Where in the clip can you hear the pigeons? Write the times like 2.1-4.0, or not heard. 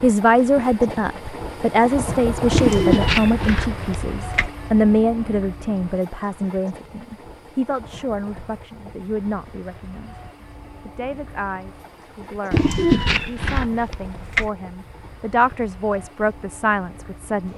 2.5-4.5, 12.5-14.5.